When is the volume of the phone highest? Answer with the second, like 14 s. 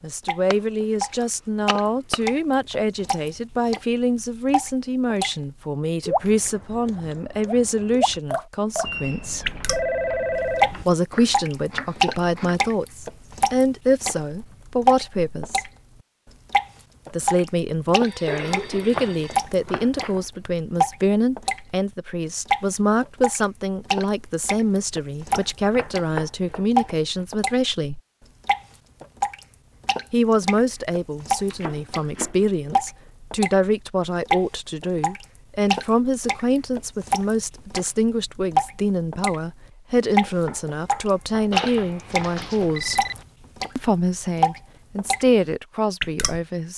10 s.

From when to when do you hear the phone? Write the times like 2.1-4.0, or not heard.
8.8-10.8, 18.0-19.4, 41.5-43.2.